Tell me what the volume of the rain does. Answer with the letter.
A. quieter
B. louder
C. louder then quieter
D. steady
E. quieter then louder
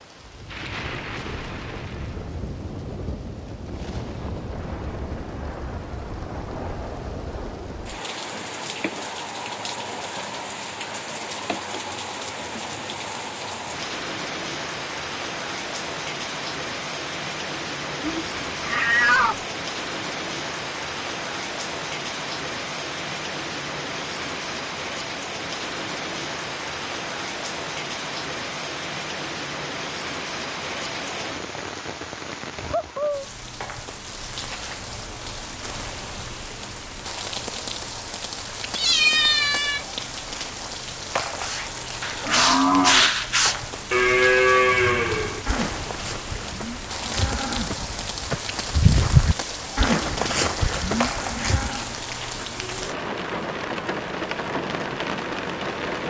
D.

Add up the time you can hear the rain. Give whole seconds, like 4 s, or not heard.
56 s.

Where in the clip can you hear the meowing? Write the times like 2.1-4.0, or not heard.
18.0-19.4, 38.8-39.9.